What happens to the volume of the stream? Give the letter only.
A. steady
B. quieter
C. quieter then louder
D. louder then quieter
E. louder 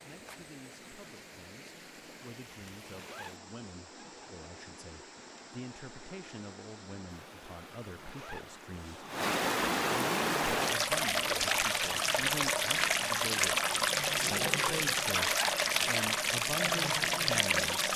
E.